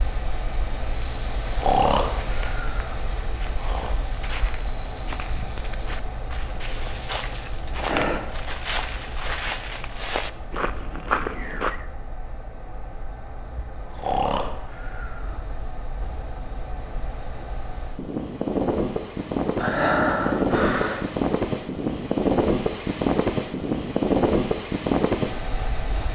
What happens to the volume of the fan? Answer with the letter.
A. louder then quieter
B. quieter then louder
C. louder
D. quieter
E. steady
B.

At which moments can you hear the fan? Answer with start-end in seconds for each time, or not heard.
0.0-26.0.